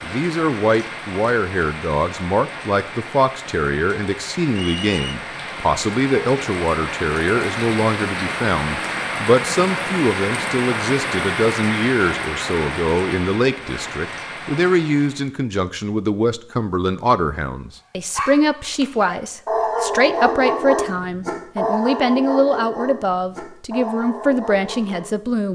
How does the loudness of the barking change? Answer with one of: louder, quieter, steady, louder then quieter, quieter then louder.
quieter.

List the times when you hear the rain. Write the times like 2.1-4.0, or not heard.
0.0-15.3.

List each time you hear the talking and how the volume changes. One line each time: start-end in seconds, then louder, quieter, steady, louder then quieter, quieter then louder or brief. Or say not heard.
0.0-25.5 steady.